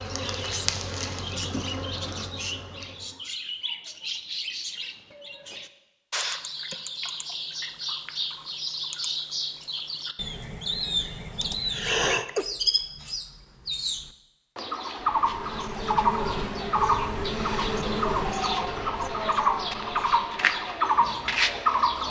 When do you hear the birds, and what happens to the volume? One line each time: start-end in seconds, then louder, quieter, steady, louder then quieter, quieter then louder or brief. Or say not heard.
0.0-22.0 louder.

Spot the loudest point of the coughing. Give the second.
12 s.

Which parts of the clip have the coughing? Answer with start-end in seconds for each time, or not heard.
1.4-2.3, 11.4-12.4.